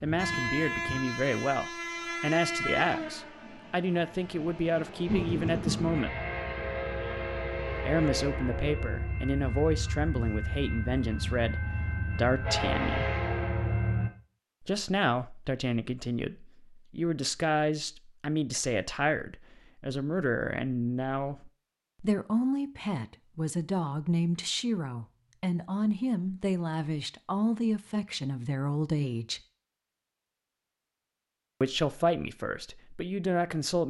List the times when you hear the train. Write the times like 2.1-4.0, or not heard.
0.0-14.1.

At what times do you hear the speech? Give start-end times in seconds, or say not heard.
0.0-6.2, 7.8-13.1, 14.6-29.4, 31.6-33.8.